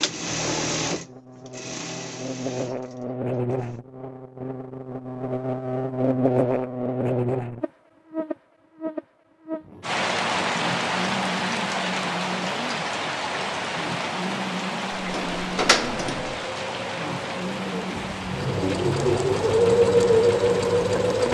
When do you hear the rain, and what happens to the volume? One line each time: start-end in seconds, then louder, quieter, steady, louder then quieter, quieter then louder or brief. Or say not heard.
9.8-21.2 quieter.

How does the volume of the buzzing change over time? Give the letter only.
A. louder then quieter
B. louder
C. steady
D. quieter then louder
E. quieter
A.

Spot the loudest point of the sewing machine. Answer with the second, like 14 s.
20 s.